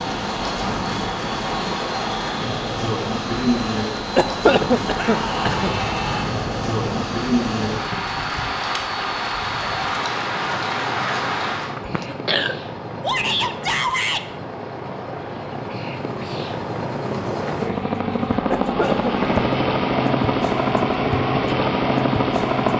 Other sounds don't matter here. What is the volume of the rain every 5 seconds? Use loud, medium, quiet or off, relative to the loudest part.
loud, loud, loud, off, off.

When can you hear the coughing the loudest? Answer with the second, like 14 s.
5 s.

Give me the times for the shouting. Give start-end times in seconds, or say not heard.
5.0-6.3, 13.0-14.2.